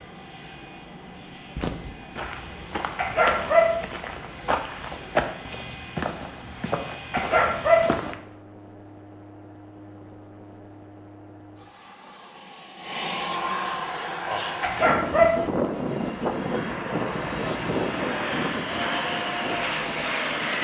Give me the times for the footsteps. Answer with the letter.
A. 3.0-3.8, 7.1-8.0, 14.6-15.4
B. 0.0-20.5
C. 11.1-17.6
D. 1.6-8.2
D.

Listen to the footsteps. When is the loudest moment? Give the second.
5 s.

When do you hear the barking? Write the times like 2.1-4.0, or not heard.
3.0-3.8, 7.1-8.0, 14.6-15.4.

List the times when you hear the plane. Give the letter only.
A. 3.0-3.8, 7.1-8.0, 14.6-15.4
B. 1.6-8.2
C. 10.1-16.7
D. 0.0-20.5
D.